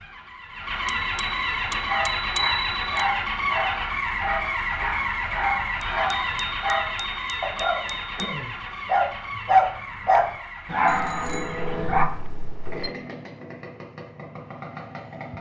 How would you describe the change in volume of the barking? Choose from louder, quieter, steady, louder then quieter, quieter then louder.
louder.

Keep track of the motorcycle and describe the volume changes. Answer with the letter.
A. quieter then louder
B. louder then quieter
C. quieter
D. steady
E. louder
C.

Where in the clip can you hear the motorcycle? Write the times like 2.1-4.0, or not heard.
0.0-15.3.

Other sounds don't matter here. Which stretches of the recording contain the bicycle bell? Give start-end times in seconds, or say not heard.
0.8-3.0, 5.9-8.3, 10.8-12.9.